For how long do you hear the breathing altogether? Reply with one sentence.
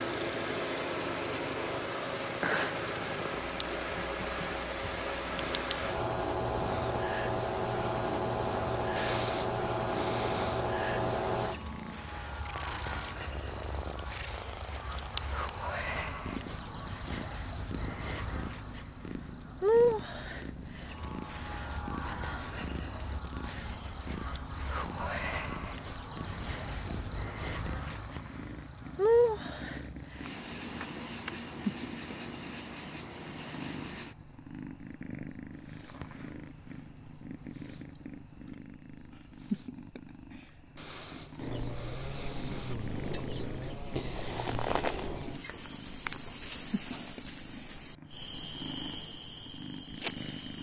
You can hear the breathing for 4 seconds altogether.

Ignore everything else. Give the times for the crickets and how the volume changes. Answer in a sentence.
You can hear the crickets from 0.0 to 50.5 s, at a steady volume.